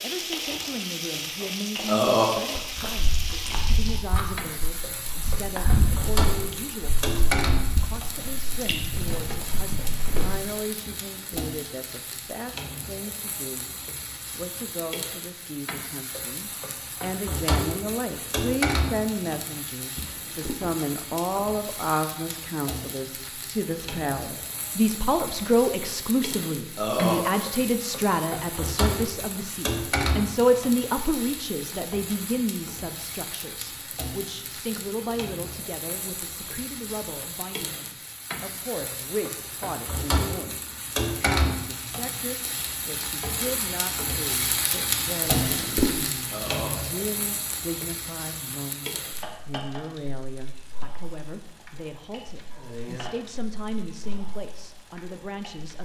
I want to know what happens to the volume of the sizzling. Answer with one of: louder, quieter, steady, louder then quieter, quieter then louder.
steady.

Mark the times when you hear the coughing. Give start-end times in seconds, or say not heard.
not heard.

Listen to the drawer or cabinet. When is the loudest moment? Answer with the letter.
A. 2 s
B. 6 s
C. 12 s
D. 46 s
D.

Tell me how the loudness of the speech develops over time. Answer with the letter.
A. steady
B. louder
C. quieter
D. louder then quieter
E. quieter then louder
D.